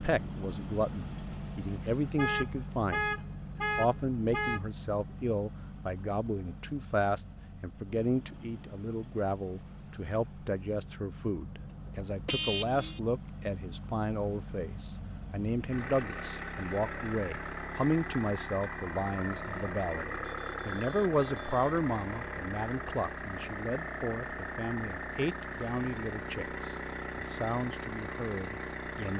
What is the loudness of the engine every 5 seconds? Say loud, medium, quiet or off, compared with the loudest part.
loud, medium, medium, loud, loud, loud.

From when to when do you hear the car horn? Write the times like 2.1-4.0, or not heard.
2.1-4.6, 11.5-13.0, 20.3-21.8.